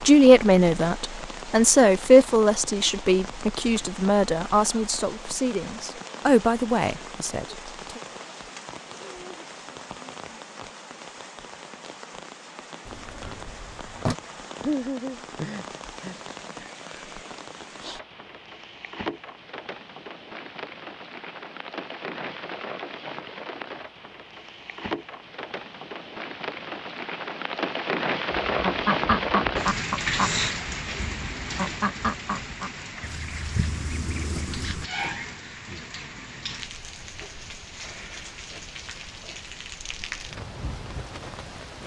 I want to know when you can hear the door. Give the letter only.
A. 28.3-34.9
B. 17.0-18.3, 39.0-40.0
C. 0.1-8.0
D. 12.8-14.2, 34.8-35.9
D.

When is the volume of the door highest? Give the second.
14 s.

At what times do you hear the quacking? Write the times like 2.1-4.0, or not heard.
28.3-34.9.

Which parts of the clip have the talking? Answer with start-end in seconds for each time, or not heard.
0.1-8.0.